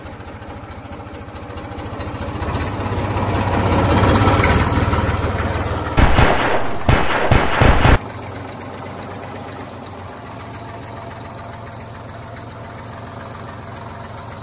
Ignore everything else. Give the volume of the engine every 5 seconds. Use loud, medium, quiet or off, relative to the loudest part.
loud, medium, quiet.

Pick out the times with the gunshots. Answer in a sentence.
The gunshots can be heard from 6.0 to 8.0 s.